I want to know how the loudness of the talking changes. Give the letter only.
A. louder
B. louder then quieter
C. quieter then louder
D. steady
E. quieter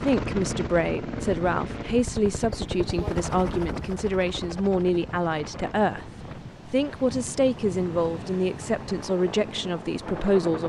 D.